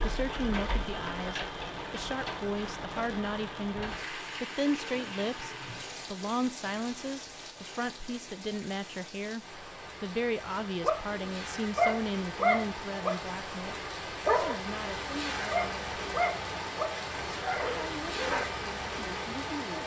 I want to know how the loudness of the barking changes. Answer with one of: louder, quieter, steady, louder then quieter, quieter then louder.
quieter.